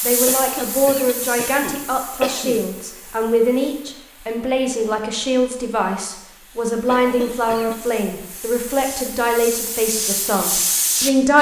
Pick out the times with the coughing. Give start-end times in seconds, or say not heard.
0.2-2.6, 6.8-7.8.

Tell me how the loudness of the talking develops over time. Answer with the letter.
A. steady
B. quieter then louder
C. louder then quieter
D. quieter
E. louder
A.